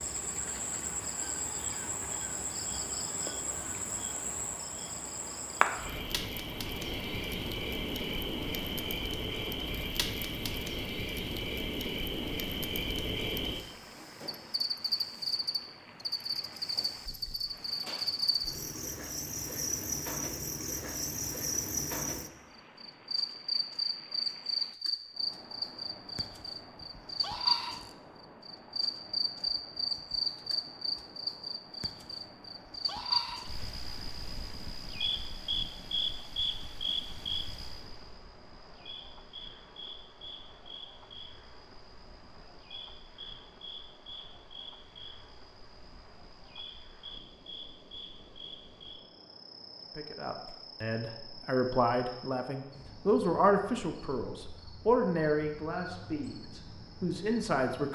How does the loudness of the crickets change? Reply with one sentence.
The volume of the crickets goes down.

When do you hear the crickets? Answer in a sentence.
You can hear the crickets from 0.0 to 57.9 s.